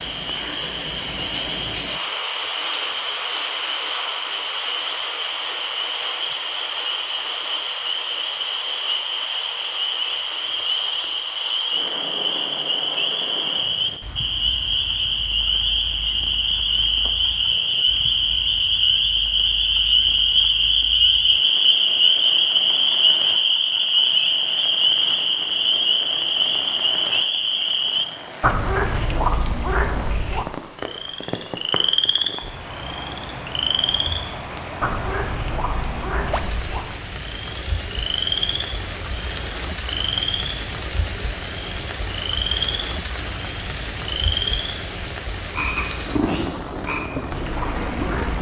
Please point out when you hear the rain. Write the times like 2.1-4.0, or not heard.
0.0-48.3.